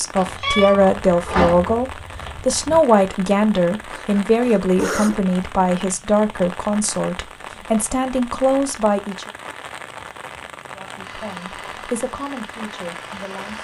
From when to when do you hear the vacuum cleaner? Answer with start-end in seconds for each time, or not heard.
11.0-13.6.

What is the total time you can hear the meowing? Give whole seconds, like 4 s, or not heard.
3 s.